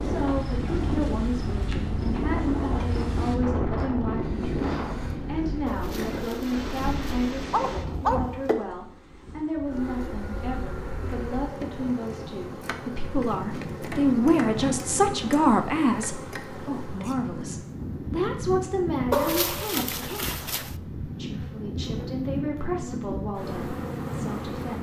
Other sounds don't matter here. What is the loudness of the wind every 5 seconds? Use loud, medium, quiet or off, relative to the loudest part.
loud, medium, medium, medium, medium.